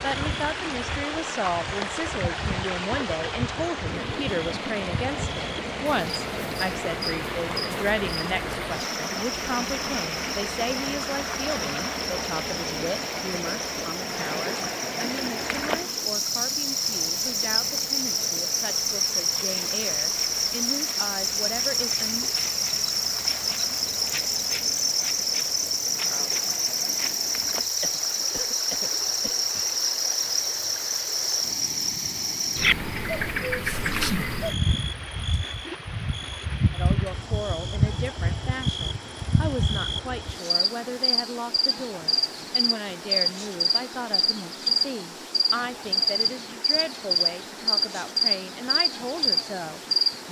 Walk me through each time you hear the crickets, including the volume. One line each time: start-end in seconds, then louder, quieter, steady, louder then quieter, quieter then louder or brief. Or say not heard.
0.0-50.2 louder.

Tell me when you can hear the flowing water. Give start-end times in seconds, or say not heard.
0.0-50.2.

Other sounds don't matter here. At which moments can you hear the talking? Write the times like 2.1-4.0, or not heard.
0.0-22.3, 36.7-50.2.